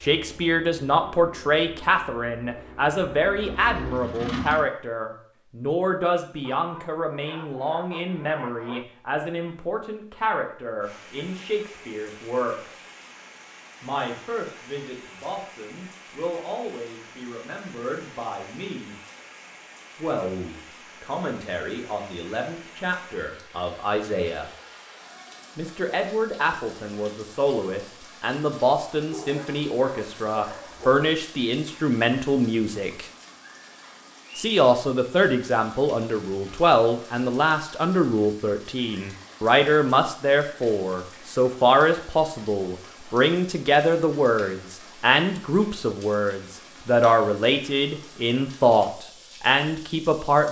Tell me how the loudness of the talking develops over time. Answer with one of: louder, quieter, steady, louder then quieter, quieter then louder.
quieter then louder.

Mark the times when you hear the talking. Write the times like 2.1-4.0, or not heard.
0.0-12.8, 13.8-18.9, 19.9-24.5, 25.6-33.0, 34.4-50.4.